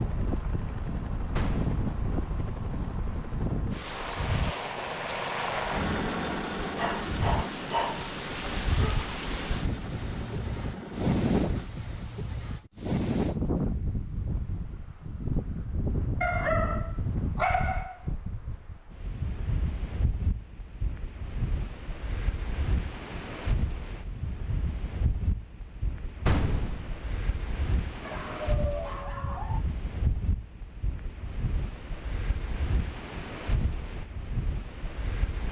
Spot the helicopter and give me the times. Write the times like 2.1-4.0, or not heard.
0.0-11.7.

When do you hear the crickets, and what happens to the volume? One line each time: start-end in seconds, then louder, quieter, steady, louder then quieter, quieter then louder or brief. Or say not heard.
not heard.